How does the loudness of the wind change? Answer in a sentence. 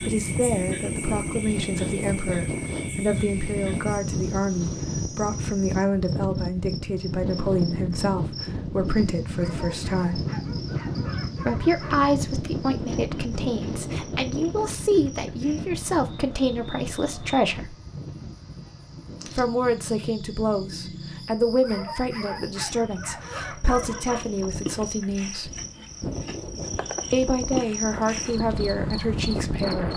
The volume of the wind goes down, then up.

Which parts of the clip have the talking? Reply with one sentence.
You can hear the talking from 0.1 to 10.2 s, from 11.3 to 17.8 s, from 19.4 to 25.5 s and from 27.1 to 29.9 s.